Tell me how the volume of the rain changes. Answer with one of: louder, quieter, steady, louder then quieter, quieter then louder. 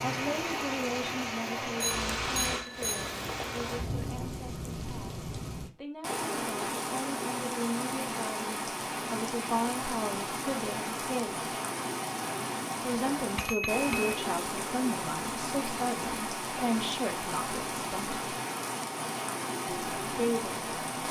steady.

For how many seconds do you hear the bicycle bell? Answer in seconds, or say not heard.
2 s.